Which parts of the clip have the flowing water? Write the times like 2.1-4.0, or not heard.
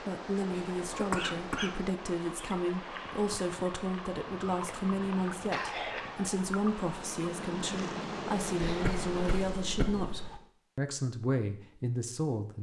0.0-9.5.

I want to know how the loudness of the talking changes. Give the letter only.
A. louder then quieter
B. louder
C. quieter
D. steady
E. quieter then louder
D.